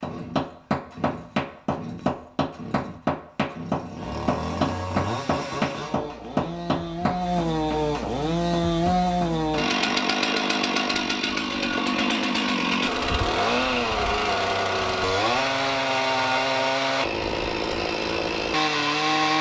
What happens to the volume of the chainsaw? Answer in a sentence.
The volume of the chainsaw goes up.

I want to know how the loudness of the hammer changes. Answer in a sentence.
The volume of the hammer goes down.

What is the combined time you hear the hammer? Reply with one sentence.
The hammer can be heard for 10 seconds in total.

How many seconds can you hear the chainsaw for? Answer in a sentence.
The chainsaw can be heard for 19 seconds in total.